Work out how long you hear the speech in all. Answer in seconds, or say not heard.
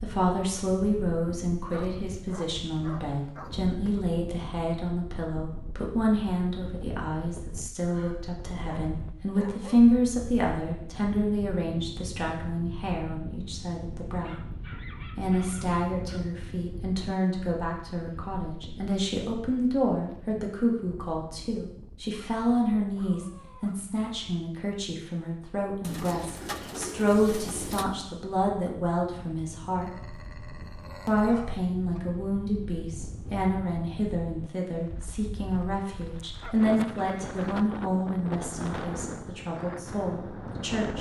39 s.